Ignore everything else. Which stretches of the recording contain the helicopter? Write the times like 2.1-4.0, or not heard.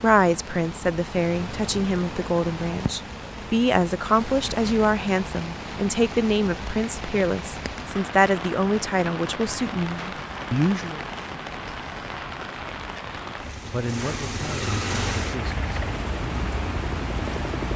14.8-17.7.